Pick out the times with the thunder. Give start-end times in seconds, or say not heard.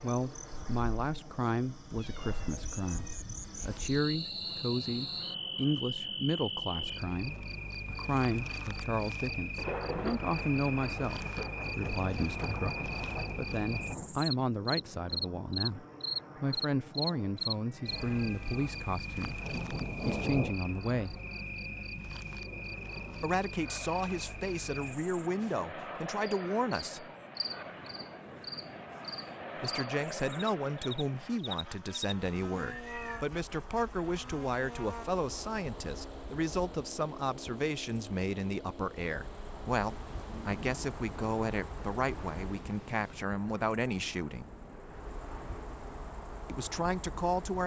9.6-14.2, 17.9-20.6, 40.0-43.2.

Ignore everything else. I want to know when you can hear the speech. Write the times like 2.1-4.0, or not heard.
0.0-21.2, 23.2-27.1, 29.6-44.5, 46.5-47.6.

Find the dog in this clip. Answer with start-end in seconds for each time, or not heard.
not heard.